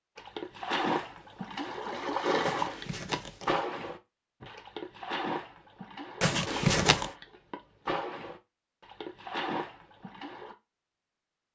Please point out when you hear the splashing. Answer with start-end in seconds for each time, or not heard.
0.1-10.6.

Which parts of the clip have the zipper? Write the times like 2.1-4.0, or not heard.
2.4-3.5, 6.2-7.1.